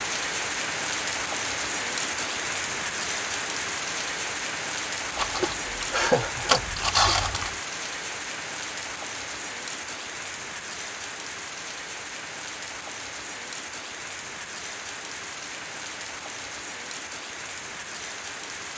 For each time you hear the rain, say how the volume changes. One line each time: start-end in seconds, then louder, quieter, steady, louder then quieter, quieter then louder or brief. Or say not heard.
0.0-18.7 quieter.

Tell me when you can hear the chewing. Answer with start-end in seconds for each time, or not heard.
5.2-7.5.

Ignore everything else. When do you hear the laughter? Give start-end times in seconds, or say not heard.
5.5-6.7.